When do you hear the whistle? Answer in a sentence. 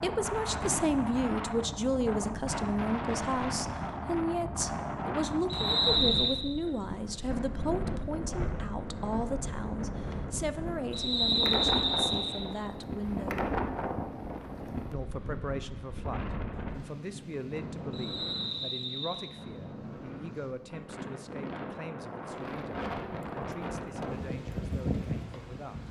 You can hear the whistle from 5.5 to 6.4 s, from 10.9 to 12.4 s and from 17.9 to 19.4 s.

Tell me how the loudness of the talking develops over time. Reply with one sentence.
The volume of the talking goes down.